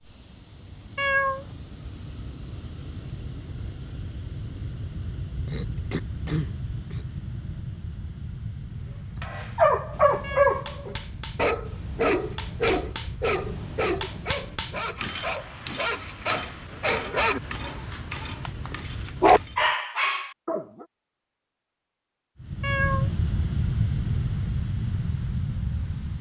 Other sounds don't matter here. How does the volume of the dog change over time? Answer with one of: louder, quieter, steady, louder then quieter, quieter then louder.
quieter then louder.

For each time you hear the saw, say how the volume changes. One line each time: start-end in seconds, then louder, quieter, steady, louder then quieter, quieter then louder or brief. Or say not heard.
not heard.